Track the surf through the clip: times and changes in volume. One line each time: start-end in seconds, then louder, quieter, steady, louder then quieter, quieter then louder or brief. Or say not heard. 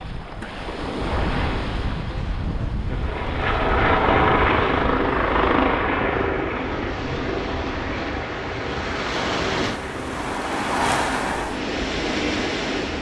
0.0-12.9 quieter then louder.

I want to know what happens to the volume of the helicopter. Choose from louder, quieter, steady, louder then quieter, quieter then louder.
quieter.